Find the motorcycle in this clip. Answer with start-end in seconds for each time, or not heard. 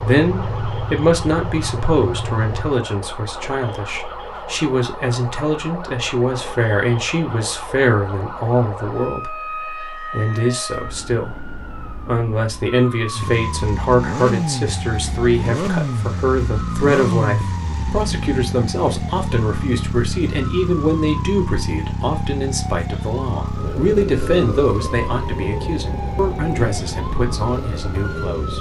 0.0-2.8, 13.1-28.5.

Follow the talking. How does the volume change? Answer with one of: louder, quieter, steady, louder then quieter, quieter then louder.
steady.